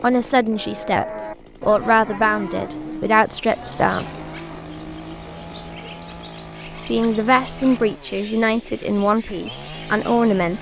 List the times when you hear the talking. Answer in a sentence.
You can hear the talking from 0.0 to 4.0 s and from 6.8 to 10.5 s.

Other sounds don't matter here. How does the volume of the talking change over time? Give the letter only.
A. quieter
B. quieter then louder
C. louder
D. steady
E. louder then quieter
D.